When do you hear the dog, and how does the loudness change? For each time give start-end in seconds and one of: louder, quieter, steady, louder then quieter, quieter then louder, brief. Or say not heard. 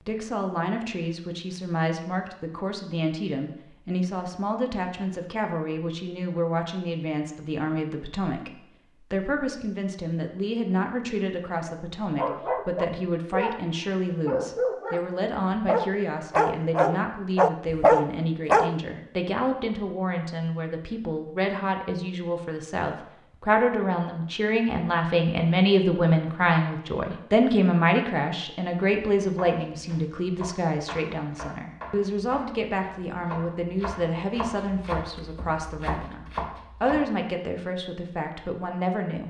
11.6-18.8 louder.